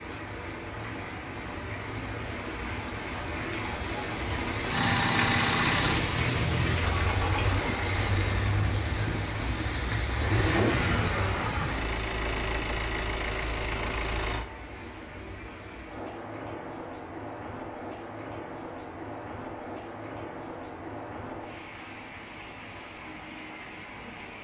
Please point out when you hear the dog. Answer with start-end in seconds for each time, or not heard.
not heard.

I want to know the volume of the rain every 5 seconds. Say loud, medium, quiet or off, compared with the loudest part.
loud, loud, medium, medium, medium.